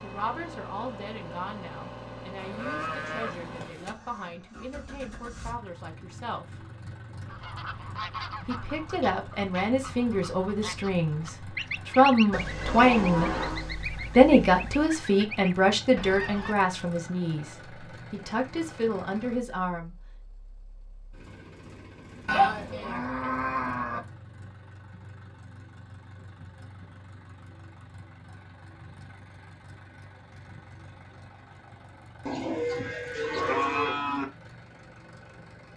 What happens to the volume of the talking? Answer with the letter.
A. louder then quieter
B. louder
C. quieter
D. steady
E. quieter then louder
A.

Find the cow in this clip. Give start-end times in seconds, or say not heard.
2.4-4.0, 12.3-14.9, 22.2-24.0, 32.2-34.2.